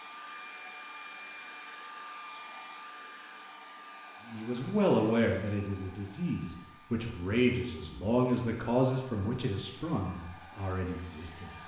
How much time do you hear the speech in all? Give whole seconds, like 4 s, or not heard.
7 s.